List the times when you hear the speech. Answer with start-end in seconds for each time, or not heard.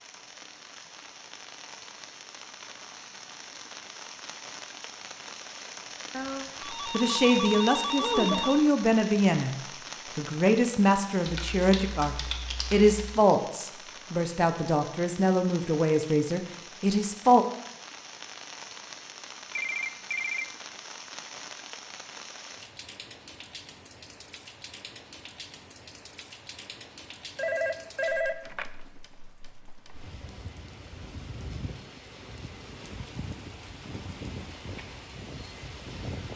6.8-9.6, 10.2-17.4.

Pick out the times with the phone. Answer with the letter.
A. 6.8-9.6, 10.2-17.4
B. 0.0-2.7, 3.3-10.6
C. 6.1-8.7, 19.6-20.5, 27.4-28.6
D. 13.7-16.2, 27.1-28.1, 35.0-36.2
C.